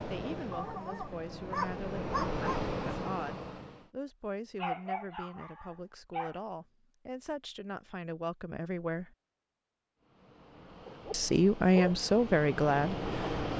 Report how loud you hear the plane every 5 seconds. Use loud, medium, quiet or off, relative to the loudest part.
loud, off, loud.